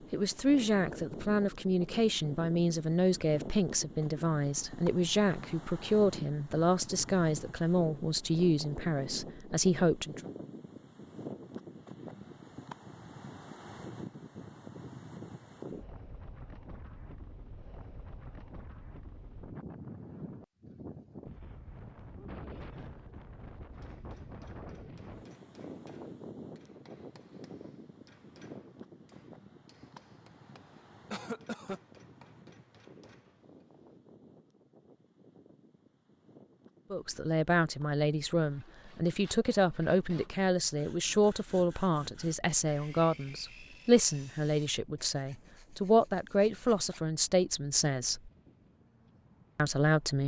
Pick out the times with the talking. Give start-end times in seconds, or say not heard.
0.1-10.2, 36.9-48.3, 49.5-50.2.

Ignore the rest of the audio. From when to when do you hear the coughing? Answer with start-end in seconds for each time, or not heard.
31.1-31.8.